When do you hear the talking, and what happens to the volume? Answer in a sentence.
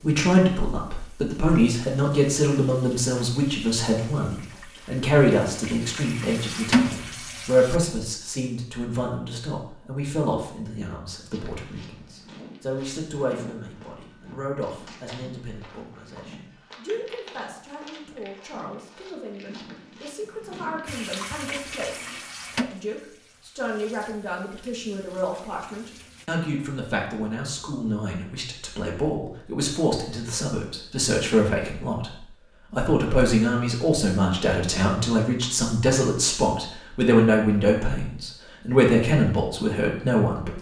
The talking can be heard from 0.0 to 40.5 s, getting quieter then louder.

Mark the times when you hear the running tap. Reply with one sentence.
You can hear the running tap from 0.0 to 7.8 s and from 20.9 to 26.3 s.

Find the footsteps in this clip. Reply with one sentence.
The footsteps can be heard from 11.3 to 21.0 s.